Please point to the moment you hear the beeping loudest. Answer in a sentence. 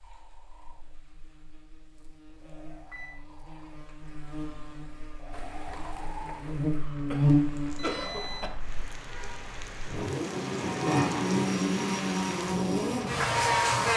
The loudest moment of the beeping is at 8 seconds.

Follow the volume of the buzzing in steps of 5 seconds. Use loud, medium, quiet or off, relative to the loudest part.
quiet, loud, loud.